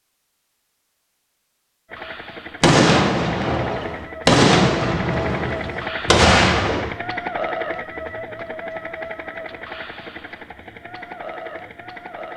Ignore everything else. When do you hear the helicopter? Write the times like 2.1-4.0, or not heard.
1.9-12.3.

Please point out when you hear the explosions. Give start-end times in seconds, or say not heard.
2.6-7.0.